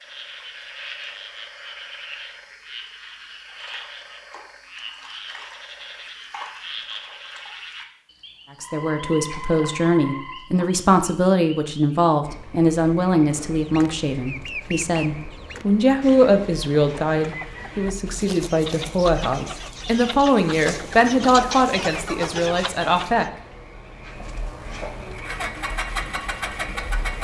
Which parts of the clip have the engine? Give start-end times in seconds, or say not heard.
25.1-27.1.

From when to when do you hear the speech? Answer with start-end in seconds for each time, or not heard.
8.6-23.2.